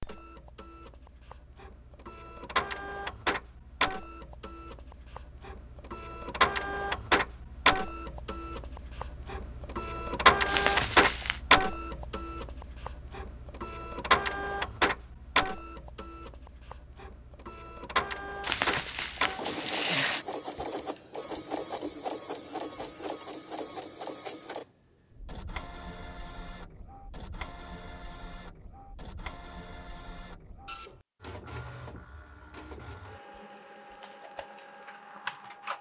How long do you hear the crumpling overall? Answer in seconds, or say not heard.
3 s.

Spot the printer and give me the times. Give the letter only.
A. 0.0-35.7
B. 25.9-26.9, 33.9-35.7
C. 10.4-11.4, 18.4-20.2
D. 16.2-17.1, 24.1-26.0
A.